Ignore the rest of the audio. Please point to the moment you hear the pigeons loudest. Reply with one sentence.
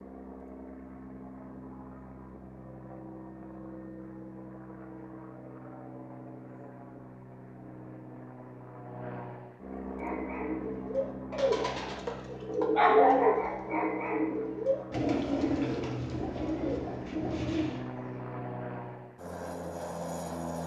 The volume of the pigeons peaks at 13 seconds.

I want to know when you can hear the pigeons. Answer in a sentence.
The pigeons can be heard from 9.9 to 17.8 s.